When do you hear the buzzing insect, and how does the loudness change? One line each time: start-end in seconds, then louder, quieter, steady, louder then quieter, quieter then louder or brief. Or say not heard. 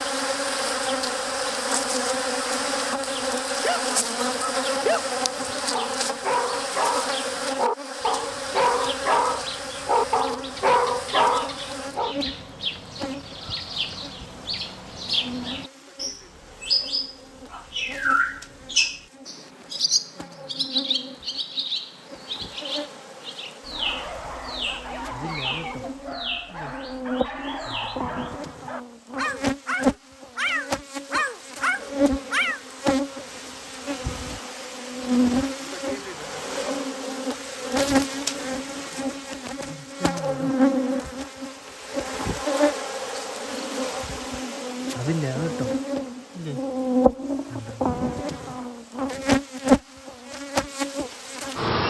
0.0-51.8 quieter then louder.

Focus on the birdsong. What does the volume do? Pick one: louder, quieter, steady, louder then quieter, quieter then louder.
louder then quieter.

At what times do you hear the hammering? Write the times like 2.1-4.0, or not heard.
not heard.